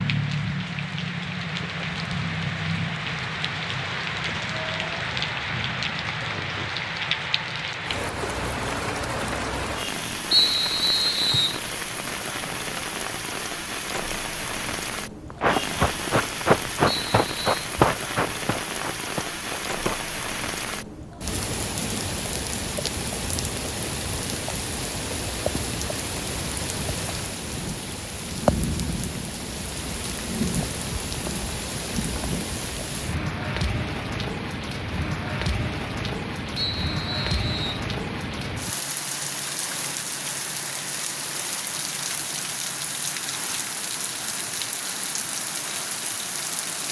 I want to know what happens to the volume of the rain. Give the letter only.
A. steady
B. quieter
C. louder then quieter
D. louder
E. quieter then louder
A.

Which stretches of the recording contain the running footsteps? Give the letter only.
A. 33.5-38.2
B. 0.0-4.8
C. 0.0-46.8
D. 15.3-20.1
D.